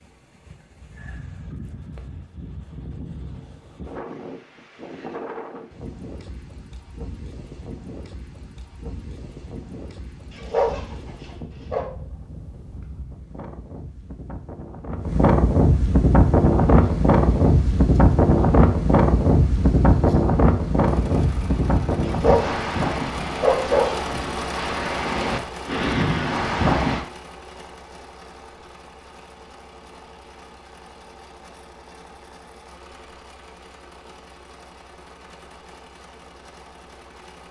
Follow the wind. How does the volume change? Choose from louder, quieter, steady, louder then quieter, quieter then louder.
louder then quieter.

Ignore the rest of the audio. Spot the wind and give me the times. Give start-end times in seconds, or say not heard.
0.0-27.1.